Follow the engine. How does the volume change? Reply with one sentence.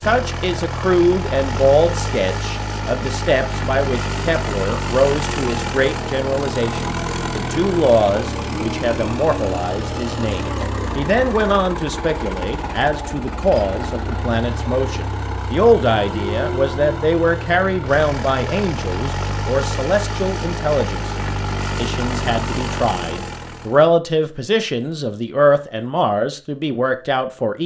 The volume of the engine stays about the same.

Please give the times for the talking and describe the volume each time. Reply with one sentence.
The talking can be heard from 0.0 to 27.6 s, at a steady volume.